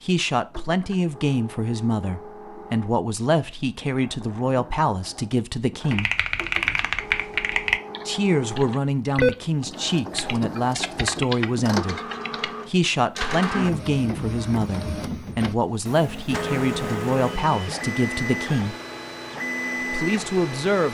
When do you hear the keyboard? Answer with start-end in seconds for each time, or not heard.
5.9-12.6.